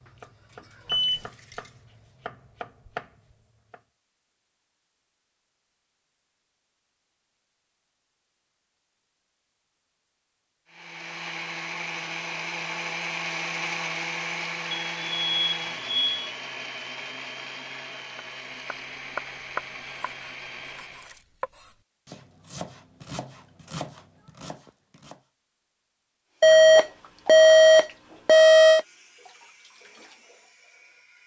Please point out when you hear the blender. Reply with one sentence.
The blender can be heard from 10.7 to 21.2 s.